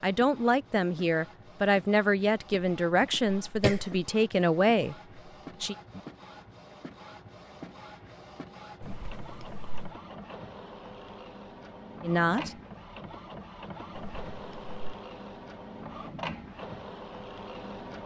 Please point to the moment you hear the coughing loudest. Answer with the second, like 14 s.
4 s.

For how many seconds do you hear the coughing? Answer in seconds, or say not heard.
3 s.